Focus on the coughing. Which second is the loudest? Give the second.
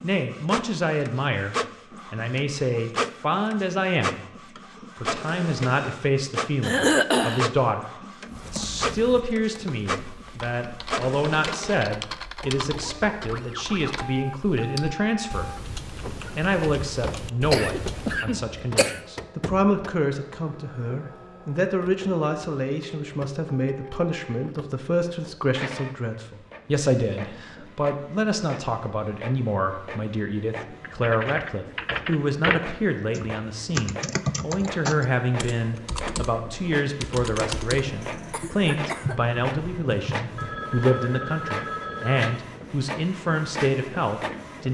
7 s.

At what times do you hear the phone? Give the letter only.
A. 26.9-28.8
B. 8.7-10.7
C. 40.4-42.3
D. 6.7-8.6
C.